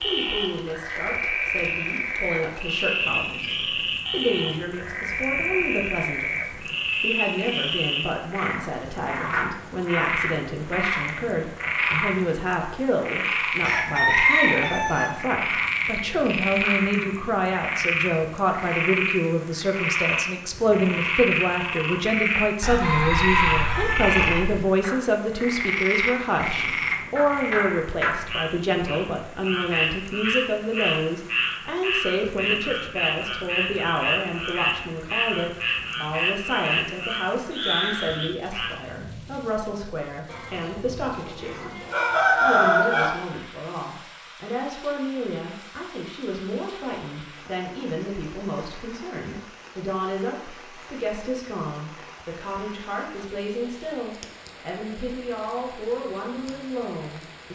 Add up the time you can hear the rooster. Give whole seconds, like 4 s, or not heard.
6 s.